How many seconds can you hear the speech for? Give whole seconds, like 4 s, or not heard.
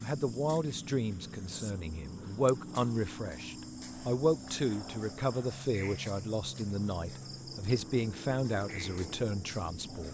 10 s.